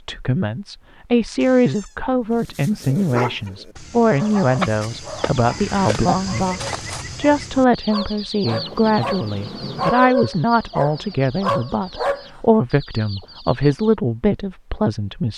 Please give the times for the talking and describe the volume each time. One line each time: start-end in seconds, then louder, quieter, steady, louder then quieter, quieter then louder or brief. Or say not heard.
0.1-15.3 steady.